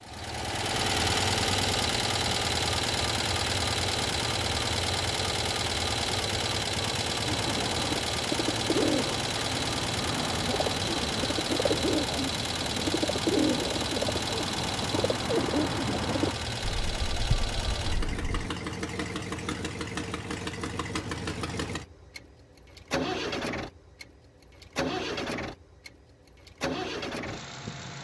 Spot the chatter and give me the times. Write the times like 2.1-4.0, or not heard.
not heard.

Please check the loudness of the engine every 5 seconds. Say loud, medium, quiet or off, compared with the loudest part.
loud, loud, loud, medium, medium, medium.